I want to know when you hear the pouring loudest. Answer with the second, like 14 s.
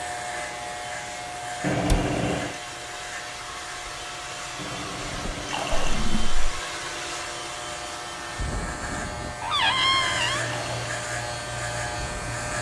2 s.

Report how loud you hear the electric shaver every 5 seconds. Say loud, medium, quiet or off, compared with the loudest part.
medium, medium, loud.